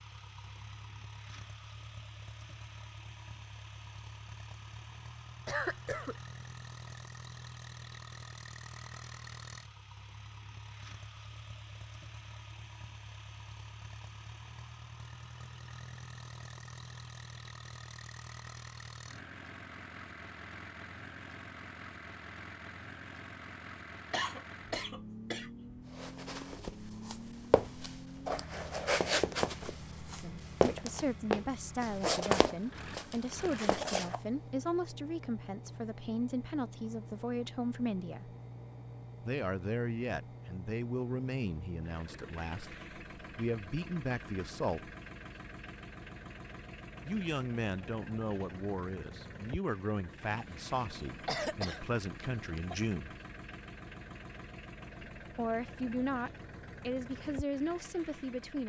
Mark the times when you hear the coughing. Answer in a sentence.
You can hear the coughing from 5.5 to 6.2 s, from 24.1 to 25.5 s and from 50.3 to 52.9 s.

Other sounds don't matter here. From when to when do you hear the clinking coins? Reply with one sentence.
The clinking coins can't be heard in this clip.